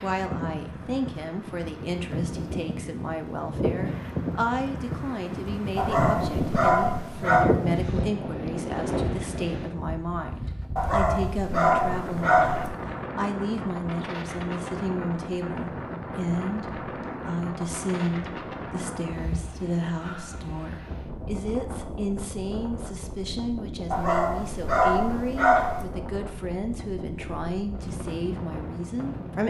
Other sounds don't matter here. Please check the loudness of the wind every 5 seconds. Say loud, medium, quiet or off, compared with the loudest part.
loud, loud, medium, medium, medium, medium.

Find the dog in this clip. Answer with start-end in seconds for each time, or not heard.
5.8-7.5, 10.8-12.7, 23.9-25.9.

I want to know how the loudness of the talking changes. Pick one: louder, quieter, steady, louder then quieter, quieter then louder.
steady.